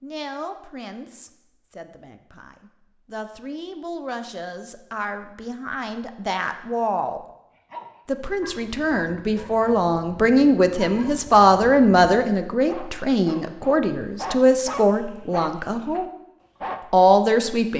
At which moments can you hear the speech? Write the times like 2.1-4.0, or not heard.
0.0-7.2, 8.1-16.1, 16.9-17.7.